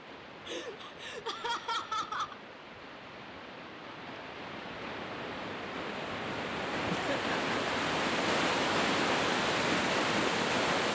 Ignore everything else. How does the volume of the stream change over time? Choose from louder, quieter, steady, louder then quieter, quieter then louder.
louder.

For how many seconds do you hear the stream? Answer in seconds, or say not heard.
11 s.